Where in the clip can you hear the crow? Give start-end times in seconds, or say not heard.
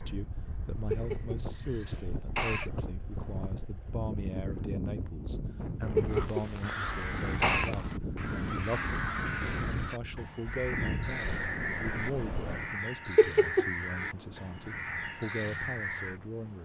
6.0-16.2.